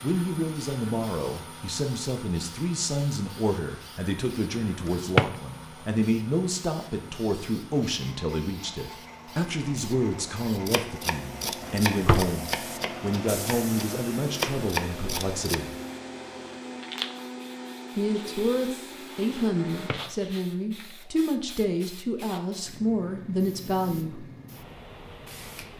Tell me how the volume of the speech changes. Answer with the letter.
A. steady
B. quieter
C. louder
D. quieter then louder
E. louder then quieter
A.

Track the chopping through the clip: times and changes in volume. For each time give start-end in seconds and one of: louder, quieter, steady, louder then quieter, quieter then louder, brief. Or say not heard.
10.7-15.6 quieter then louder.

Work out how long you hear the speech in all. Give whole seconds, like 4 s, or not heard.
22 s.